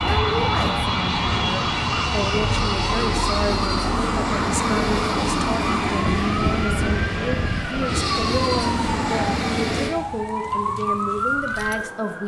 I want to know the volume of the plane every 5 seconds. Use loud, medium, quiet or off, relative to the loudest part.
loud, loud, off.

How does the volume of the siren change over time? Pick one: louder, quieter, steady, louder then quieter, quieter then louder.
steady.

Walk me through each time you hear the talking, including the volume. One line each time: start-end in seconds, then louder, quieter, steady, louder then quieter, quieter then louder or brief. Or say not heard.
0.0-12.2 steady.